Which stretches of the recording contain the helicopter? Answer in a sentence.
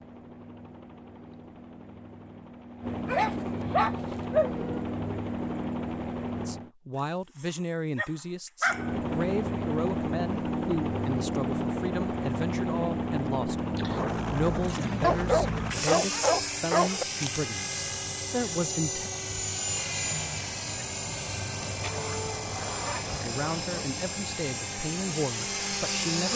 The helicopter can be heard from 0.0 to 6.7 s and from 8.7 to 26.3 s.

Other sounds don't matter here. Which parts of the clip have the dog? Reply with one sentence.
You can hear the dog from 3.0 to 4.8 s, from 8.0 to 8.9 s, from 15.0 to 17.1 s and from 21.8 to 23.8 s.